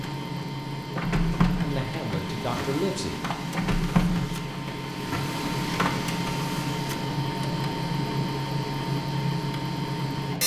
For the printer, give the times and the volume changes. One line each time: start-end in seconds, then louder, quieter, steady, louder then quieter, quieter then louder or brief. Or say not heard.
0.0-10.4 steady.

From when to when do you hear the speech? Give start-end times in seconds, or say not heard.
1.6-3.1.